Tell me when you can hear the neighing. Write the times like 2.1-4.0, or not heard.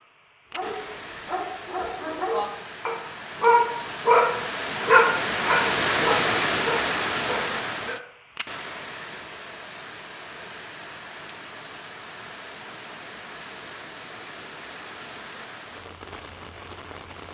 not heard.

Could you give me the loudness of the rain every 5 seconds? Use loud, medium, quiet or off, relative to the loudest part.
medium, loud, quiet, quiet.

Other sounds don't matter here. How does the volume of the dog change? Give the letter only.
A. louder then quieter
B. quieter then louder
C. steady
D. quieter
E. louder
A.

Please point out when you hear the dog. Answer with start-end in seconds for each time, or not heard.
0.5-8.0.